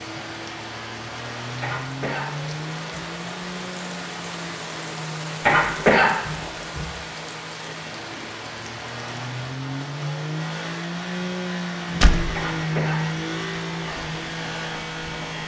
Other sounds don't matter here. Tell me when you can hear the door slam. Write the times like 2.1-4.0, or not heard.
12.0-12.4.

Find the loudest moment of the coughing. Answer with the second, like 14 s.
6 s.